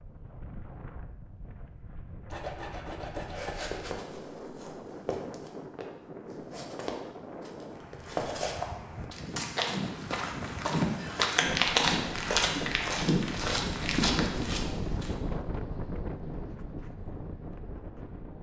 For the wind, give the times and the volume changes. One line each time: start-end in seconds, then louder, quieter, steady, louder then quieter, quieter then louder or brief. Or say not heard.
0.0-18.3 louder.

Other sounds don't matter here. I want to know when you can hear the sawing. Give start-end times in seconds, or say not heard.
2.3-3.9.